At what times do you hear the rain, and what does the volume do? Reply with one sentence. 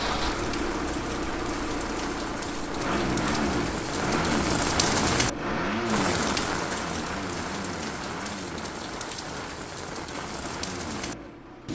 The rain can be heard from 0.0 to 11.7 s, getting louder then quieter.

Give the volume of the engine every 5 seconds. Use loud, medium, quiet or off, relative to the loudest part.
loud, loud, medium.